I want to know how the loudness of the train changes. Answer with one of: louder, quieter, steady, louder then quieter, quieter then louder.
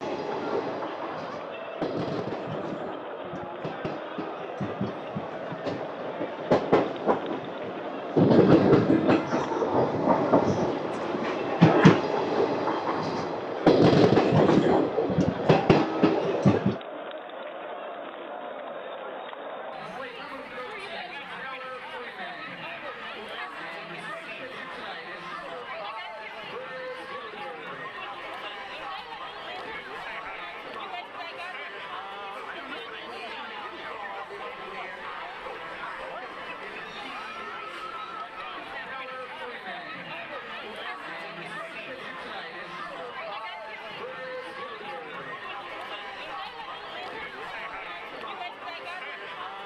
louder.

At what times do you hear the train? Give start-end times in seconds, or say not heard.
0.0-16.8.